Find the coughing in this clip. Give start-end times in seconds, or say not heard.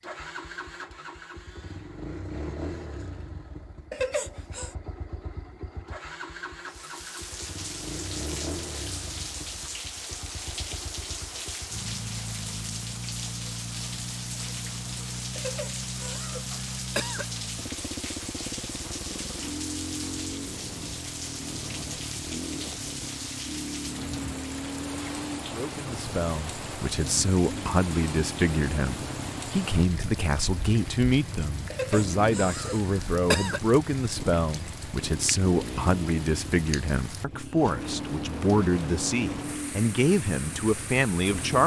3.9-4.8, 15.3-17.2, 31.7-33.6.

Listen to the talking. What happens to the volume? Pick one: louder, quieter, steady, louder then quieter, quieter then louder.
steady.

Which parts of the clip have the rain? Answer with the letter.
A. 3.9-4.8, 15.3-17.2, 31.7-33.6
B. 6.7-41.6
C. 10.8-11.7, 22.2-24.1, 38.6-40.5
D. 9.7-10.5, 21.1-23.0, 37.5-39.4
B.